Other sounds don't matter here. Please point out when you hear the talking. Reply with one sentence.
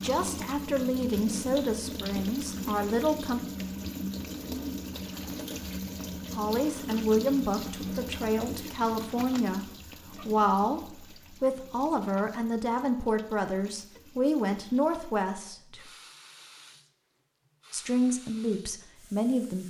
The talking can be heard from 0.0 to 3.4 s, from 6.3 to 15.8 s and from 17.7 to 19.6 s.